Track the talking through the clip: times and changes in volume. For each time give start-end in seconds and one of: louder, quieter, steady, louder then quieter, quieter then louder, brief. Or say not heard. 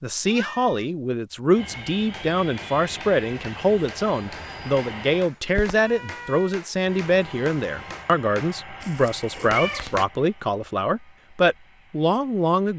0.0-12.7 steady.